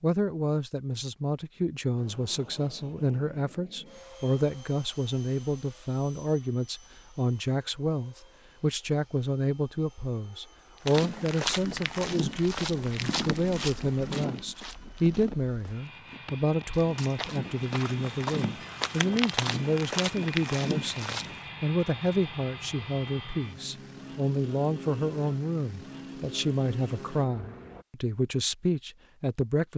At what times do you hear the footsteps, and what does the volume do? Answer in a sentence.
You can hear the footsteps from 10.8 to 21.4 s, getting quieter then louder.